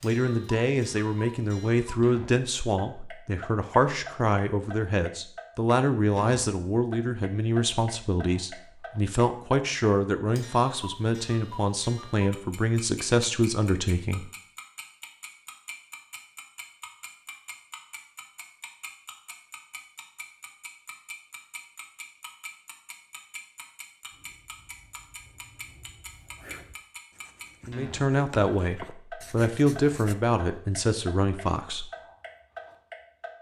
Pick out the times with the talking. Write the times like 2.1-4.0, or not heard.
0.0-14.3, 27.6-31.9.